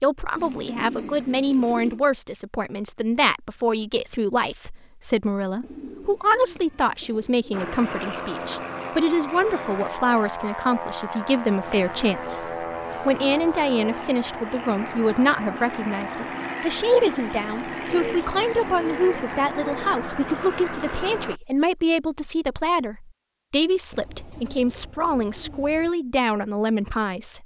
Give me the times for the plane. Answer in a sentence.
You can hear the plane from 7.5 to 21.4 s.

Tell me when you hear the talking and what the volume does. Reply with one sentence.
You can hear the talking from 0.0 to 27.4 s, at a steady volume.